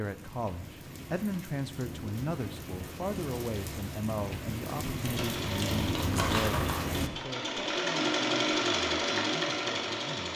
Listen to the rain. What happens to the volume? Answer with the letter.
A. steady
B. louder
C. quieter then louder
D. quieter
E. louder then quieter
B.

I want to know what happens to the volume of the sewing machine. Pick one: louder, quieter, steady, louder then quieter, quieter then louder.
louder.